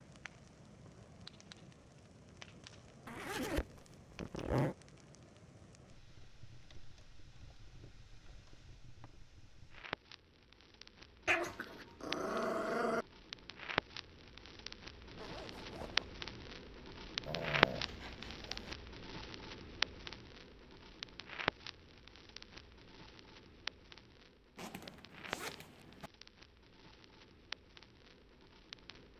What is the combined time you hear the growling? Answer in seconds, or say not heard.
3 s.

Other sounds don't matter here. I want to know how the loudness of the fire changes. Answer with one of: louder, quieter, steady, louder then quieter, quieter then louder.
louder then quieter.